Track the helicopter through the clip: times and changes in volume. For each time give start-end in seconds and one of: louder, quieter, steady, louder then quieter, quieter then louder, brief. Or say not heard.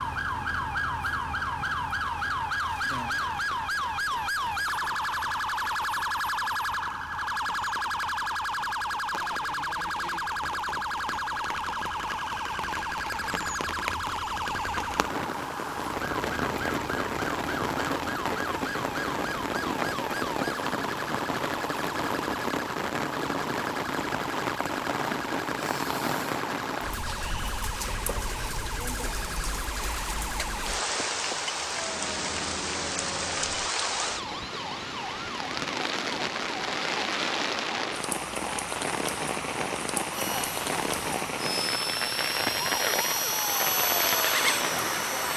40.1-45.3 louder.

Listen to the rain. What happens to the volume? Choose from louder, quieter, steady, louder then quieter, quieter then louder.
louder.